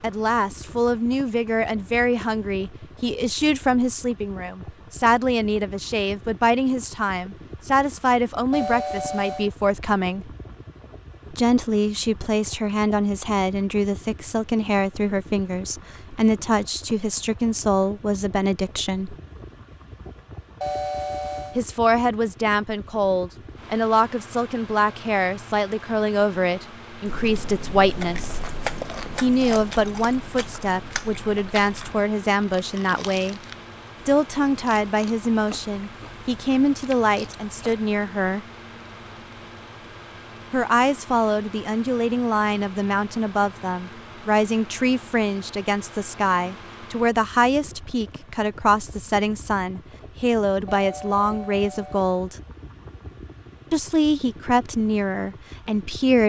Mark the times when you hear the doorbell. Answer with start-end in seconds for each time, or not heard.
8.5-9.5, 20.6-21.6, 50.6-52.0.